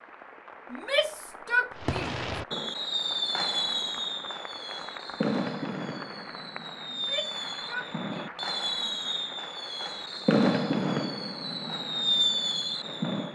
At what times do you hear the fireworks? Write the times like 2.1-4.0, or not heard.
1.8-13.2.